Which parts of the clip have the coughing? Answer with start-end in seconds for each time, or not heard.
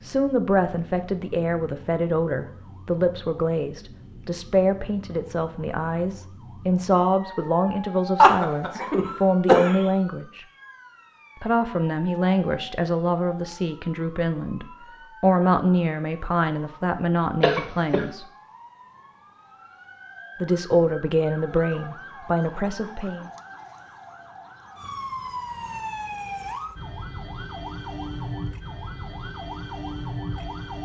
8.2-9.8, 17.4-18.1.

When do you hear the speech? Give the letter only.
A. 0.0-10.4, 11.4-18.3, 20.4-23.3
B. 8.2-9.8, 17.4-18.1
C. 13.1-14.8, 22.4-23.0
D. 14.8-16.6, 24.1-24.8
A.